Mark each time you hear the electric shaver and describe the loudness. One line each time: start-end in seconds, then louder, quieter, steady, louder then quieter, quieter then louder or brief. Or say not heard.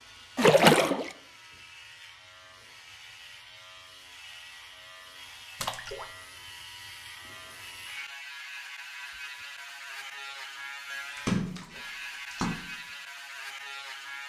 0.0-14.2 louder.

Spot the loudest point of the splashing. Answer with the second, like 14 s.
1 s.